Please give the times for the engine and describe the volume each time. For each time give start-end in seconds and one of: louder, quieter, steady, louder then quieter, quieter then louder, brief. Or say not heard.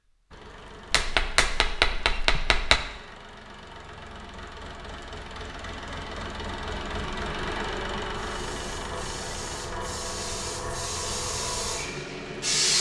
0.1-12.5 louder then quieter.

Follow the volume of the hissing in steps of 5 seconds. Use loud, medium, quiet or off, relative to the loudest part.
off, medium, loud.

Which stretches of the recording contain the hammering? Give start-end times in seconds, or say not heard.
0.9-2.8.